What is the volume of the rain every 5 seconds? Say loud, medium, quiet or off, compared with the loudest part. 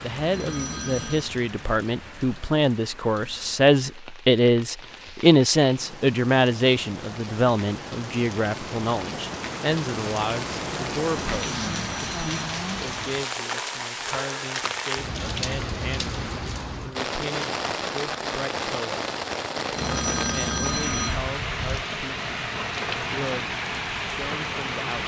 quiet, medium, loud, loud, loud.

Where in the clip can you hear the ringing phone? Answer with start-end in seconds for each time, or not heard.
0.2-1.3, 11.3-12.6, 19.7-21.2.